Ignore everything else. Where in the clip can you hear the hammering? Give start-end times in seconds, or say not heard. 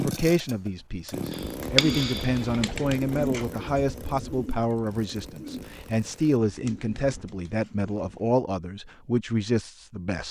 1.3-2.6.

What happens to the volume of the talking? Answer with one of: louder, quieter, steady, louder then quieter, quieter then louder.
steady.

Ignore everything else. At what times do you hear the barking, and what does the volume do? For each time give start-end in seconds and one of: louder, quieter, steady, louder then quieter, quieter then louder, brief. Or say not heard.
not heard.